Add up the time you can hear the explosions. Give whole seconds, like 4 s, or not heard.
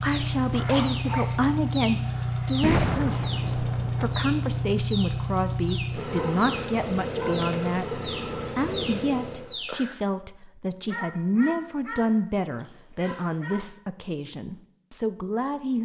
2 s.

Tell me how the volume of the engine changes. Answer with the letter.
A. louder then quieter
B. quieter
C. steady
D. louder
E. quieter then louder
C.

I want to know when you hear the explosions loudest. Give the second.
3 s.